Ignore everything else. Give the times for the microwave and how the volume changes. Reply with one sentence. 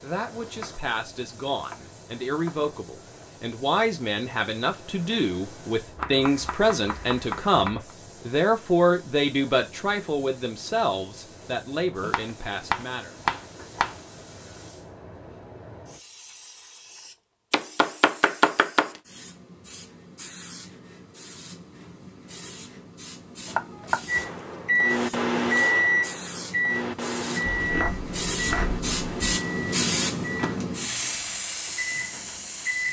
The microwave can be heard from 24.1 to 32.8 s, getting quieter.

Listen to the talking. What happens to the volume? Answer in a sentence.
The volume of the talking goes up, then down.